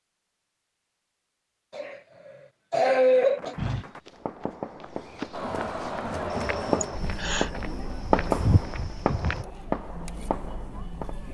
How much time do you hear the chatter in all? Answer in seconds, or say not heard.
6 s.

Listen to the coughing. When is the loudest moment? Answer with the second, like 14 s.
3 s.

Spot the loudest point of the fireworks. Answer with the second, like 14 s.
8 s.